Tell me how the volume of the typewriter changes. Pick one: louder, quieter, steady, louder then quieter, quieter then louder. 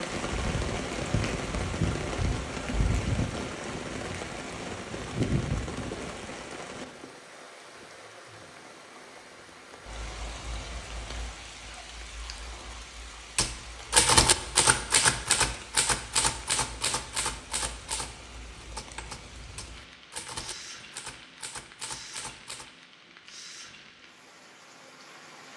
quieter.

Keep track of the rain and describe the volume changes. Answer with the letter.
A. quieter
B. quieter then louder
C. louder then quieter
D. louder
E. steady
A.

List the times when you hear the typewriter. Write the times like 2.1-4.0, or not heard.
13.3-22.7.